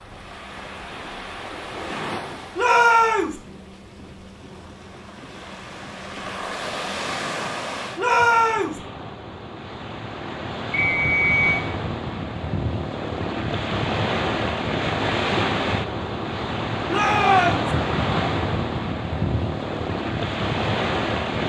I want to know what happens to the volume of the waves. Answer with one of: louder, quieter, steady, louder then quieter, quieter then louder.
louder.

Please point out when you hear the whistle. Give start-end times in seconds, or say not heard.
10.7-11.7.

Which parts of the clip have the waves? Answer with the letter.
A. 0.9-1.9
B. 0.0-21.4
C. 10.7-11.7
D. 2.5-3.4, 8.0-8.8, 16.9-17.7
B.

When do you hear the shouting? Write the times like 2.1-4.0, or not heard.
2.5-3.4, 8.0-8.8, 16.9-17.7.